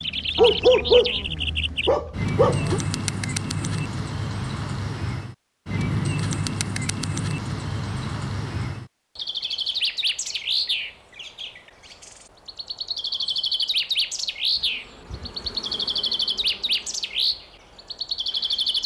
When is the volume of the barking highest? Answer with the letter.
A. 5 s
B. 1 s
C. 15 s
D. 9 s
B.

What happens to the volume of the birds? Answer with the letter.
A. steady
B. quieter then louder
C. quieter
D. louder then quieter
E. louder
A.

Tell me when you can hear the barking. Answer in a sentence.
The barking can be heard from 0.3 to 2.8 s.